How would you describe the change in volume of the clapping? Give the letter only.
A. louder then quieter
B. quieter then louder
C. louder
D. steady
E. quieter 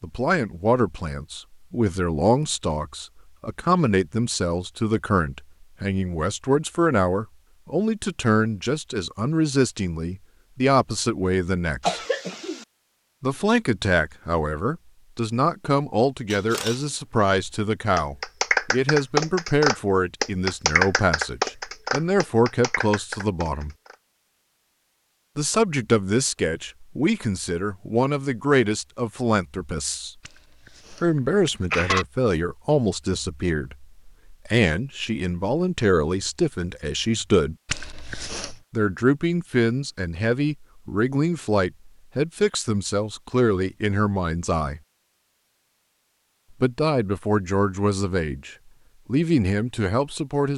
E.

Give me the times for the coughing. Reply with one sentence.
You can hear the coughing from 11.8 to 12.7 s, from 30.2 to 32.0 s and from 37.6 to 38.5 s.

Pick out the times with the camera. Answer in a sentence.
The camera can be heard from 16.3 to 16.9 s.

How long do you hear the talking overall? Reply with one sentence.
The talking can be heard for 44 seconds in total.